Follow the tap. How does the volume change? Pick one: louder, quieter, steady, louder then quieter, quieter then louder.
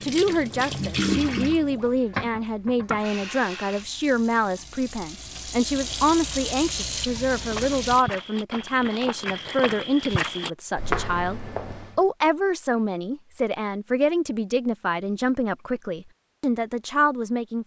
quieter then louder.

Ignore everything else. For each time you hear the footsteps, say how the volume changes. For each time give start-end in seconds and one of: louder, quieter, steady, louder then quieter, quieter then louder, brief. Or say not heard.
7.3-12.0 louder.